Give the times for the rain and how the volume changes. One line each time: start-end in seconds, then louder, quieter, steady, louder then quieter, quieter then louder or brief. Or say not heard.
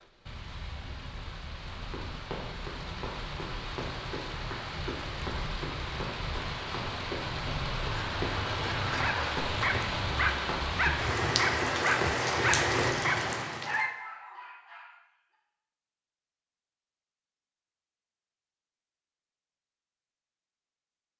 0.0-13.8 louder.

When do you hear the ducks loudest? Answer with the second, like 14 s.
9 s.